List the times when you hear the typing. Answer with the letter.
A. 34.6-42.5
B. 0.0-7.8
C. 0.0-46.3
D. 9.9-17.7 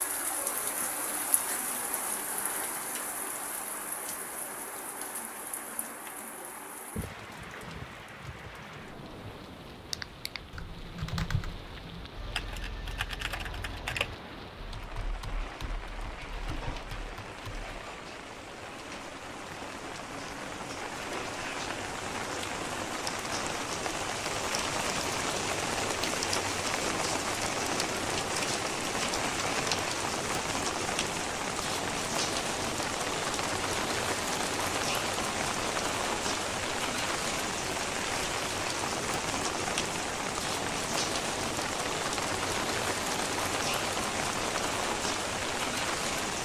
D.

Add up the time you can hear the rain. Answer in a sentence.
You can hear the rain for 46 seconds altogether.